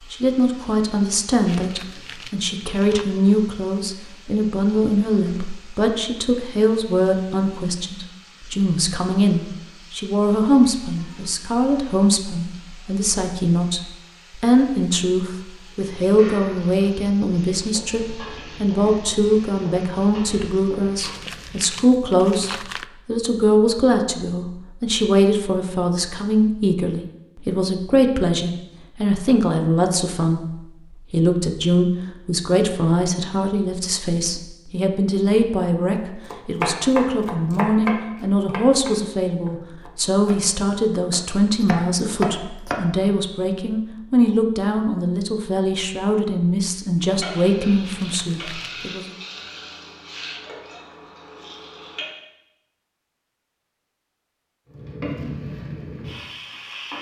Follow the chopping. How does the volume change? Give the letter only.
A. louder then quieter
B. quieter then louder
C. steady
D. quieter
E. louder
B.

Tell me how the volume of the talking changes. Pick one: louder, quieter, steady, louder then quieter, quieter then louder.
steady.